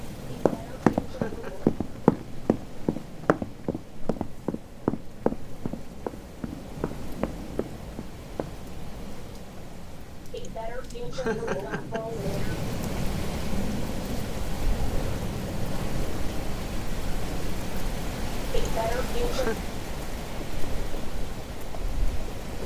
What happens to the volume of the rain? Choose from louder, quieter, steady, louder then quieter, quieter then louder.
louder.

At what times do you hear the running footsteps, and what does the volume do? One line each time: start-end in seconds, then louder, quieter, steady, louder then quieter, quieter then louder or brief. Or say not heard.
0.5-8.6 quieter.